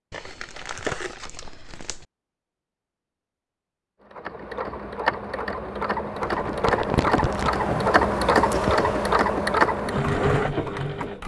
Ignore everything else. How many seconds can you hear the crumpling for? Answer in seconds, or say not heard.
3 s.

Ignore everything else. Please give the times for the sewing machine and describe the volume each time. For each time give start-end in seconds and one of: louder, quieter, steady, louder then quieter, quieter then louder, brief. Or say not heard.
4.0-11.2 louder.